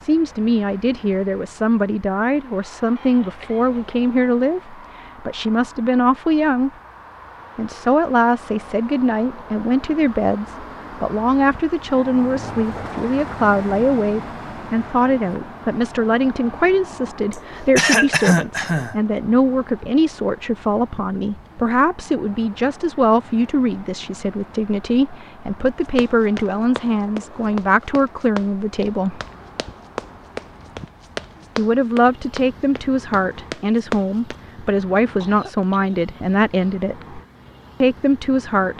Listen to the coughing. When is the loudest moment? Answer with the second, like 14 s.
18 s.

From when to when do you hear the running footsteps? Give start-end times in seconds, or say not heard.
25.9-34.4.